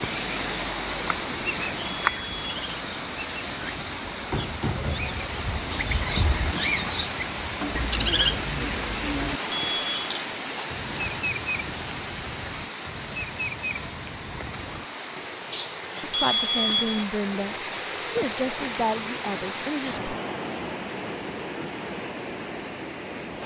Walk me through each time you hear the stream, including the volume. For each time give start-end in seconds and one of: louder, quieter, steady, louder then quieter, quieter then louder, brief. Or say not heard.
0.0-23.4 steady.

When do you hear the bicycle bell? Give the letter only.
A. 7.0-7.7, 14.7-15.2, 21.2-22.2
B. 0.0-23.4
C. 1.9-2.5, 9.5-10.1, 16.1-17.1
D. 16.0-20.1
C.